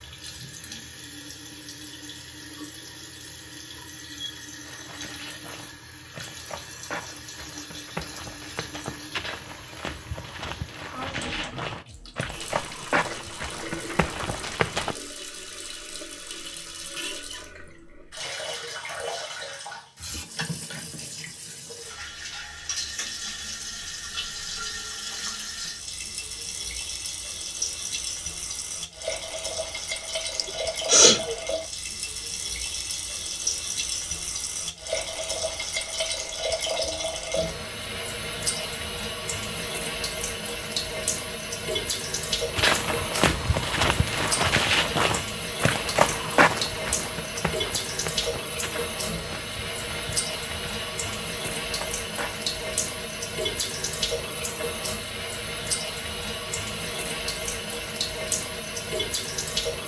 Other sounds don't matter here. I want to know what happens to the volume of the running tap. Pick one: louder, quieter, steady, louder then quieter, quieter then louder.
louder.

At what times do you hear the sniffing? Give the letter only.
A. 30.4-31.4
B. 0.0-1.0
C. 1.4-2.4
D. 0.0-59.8
A.